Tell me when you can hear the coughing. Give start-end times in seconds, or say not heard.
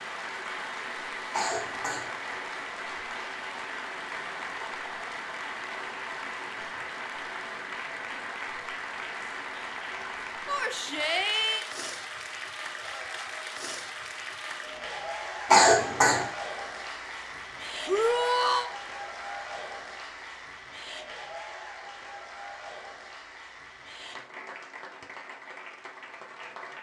1.3-2.1, 15.5-16.2.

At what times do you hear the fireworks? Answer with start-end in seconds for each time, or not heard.
not heard.